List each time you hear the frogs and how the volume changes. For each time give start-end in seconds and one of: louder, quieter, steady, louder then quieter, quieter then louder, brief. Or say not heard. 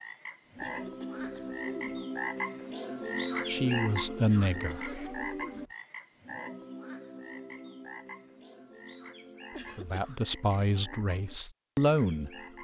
0.0-12.5 quieter.